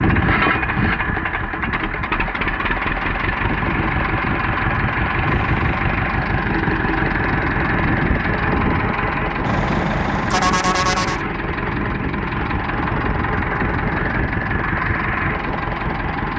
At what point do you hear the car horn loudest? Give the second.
11 s.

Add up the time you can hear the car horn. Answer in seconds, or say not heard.
2 s.